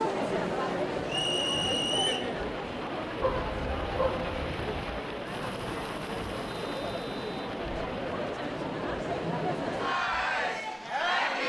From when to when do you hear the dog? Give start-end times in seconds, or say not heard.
3.2-4.9.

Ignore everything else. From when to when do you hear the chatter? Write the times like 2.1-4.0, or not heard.
0.0-11.4.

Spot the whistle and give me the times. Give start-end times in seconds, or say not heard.
1.1-2.3, 6.5-7.3.